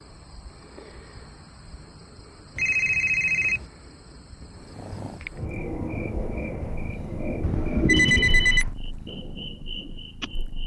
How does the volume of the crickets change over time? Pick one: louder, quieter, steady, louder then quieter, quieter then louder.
louder then quieter.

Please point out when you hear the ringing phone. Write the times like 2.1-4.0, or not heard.
2.5-3.6, 7.4-8.8.